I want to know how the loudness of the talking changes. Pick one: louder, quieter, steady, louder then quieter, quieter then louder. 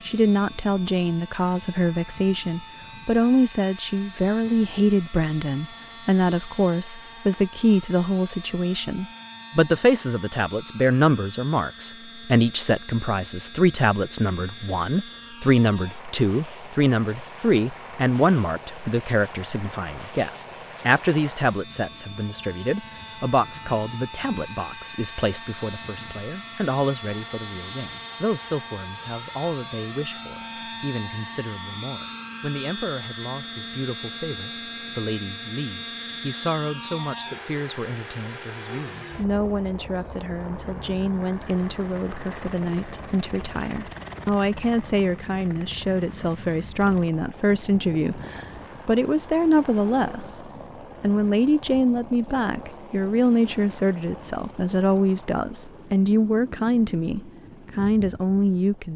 quieter then louder.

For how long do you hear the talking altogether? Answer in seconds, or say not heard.
58 s.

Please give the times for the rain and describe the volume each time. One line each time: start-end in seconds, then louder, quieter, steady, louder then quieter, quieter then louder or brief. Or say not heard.
not heard.